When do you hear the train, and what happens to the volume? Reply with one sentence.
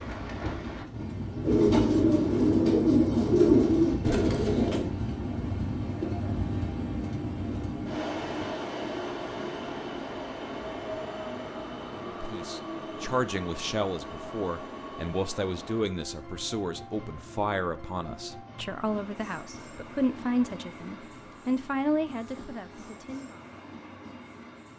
You can hear the train from 0.0 to 24.7 s, getting quieter.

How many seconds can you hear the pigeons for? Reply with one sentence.
The pigeons can be heard for 5 seconds in total.